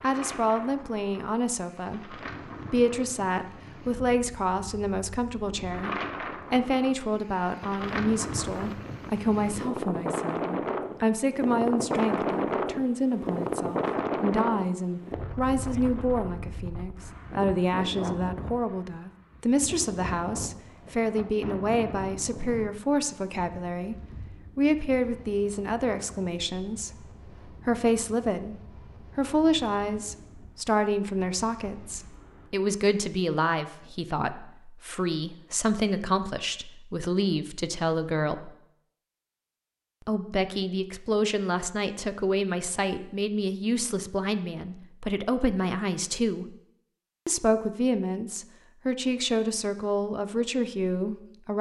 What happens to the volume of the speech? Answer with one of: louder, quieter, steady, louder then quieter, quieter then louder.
steady.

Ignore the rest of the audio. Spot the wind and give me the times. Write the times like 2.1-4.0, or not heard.
0.0-32.5.